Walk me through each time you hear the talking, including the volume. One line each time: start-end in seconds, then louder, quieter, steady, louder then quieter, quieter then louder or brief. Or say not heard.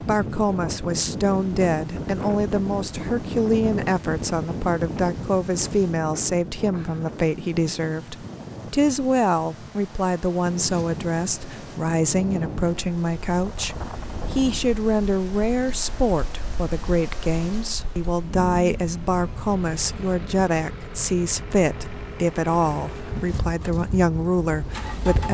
0.0-25.2 steady.